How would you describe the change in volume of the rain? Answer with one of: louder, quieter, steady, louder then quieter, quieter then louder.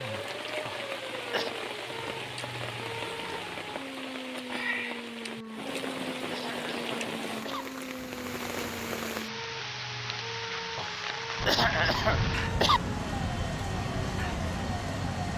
steady.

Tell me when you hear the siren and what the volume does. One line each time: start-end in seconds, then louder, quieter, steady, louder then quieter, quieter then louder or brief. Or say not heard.
0.0-15.3 steady.